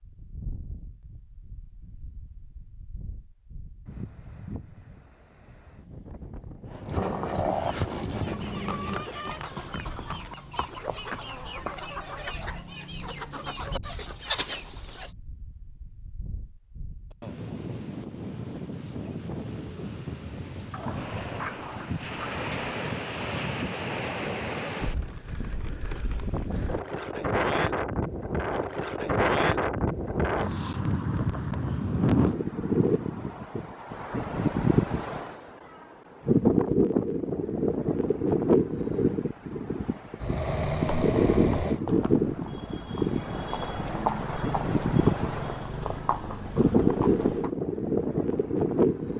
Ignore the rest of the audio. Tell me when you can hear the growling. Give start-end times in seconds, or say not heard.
7.0-8.9, 20.7-22.6, 40.2-41.8.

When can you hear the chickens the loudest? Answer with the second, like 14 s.
14 s.